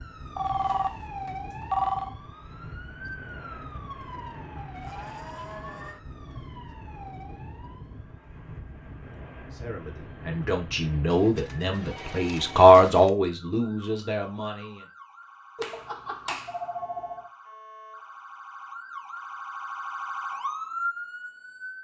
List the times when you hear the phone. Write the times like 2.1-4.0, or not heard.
0.3-2.1, 11.1-13.1, 15.6-17.3.